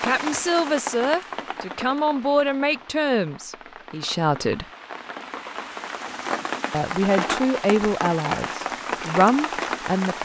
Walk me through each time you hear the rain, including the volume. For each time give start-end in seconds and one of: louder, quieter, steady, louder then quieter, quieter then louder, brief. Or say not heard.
0.0-10.2 quieter then louder.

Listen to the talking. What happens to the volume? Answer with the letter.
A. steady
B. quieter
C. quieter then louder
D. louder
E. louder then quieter
A.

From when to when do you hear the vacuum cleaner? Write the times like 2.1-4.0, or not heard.
not heard.